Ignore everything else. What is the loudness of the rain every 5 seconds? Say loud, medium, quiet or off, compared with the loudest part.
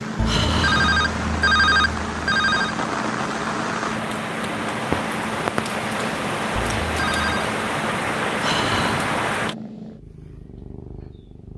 loud, loud, off.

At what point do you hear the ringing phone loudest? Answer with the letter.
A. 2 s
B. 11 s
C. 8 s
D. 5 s
A.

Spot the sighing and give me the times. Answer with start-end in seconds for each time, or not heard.
0.2-0.9, 8.4-9.2.